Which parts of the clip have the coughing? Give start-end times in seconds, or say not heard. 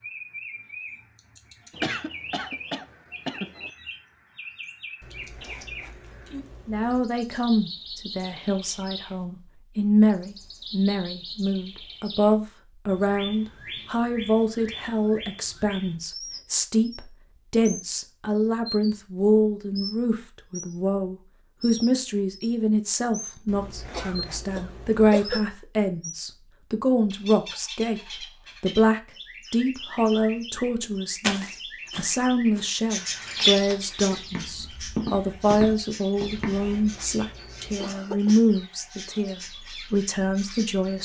1.7-3.7, 23.9-25.4, 37.8-38.4.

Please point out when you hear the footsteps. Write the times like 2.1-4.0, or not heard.
31.2-36.7.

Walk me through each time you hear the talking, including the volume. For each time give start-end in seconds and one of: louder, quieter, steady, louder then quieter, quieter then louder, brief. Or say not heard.
6.7-40.9 steady.